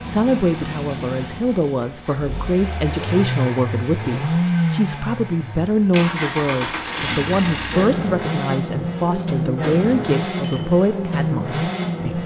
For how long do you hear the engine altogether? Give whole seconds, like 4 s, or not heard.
12 s.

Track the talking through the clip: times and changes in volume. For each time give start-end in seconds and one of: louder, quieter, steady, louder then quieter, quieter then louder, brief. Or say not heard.
0.0-12.2 steady.